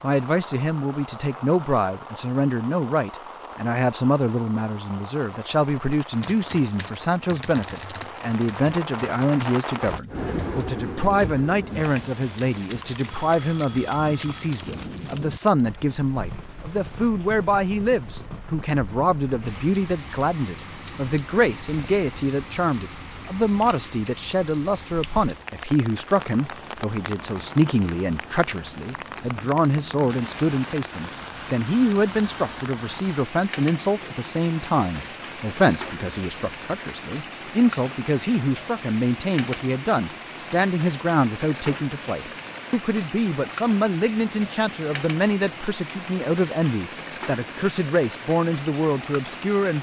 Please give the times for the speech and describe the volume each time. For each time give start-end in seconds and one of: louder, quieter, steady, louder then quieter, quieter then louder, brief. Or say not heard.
0.0-49.7 steady.